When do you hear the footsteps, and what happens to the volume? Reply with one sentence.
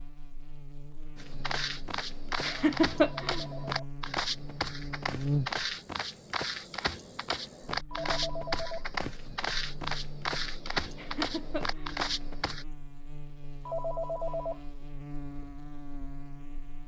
The footsteps can be heard from 1.1 to 12.7 s, at a steady volume.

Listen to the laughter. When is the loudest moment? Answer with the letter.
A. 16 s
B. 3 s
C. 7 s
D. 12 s
B.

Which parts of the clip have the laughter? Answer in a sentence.
The laughter can be heard from 2.4 to 3.5 s and from 10.9 to 12.0 s.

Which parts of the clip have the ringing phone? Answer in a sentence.
You can hear the ringing phone from 3.2 to 3.9 s, from 7.9 to 8.8 s and from 13.7 to 14.6 s.